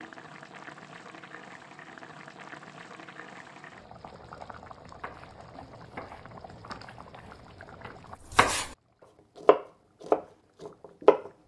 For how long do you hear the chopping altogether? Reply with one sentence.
You can hear the chopping for 6 seconds altogether.